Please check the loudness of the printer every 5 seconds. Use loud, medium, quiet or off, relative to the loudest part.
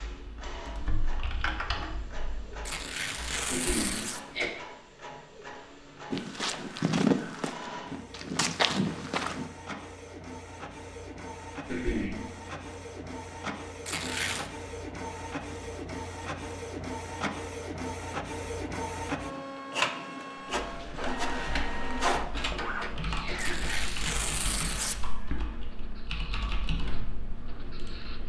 quiet, medium, medium, loud, loud, quiet.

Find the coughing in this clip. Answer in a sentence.
You can hear the coughing from 3.5 to 4.5 s, from 11.7 to 12.2 s and from 22.4 to 23.9 s.